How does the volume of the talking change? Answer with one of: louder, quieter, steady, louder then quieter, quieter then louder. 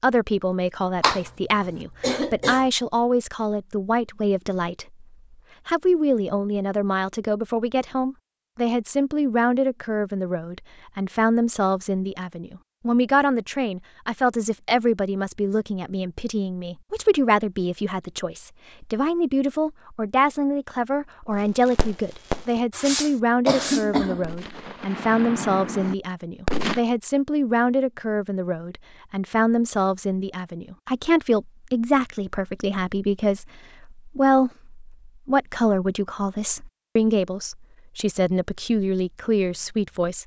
steady.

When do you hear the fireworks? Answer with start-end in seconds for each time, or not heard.
21.3-26.8.